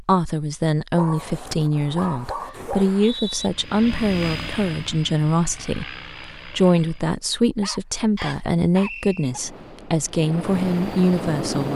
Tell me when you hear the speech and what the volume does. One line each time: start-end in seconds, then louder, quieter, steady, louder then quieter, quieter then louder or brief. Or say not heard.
0.0-11.7 steady.